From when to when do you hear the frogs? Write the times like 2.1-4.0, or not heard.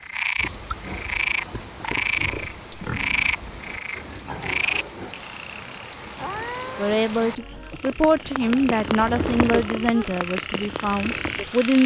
0.0-11.8.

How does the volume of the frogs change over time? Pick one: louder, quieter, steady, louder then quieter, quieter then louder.
quieter then louder.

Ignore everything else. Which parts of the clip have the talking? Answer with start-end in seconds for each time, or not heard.
6.8-11.8.